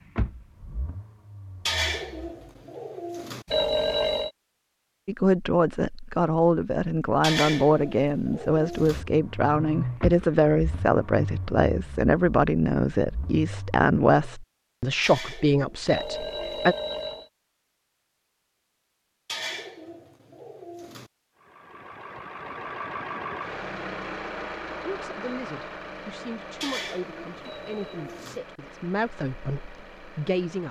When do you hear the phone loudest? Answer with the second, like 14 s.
4 s.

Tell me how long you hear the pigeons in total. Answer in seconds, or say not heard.
9 s.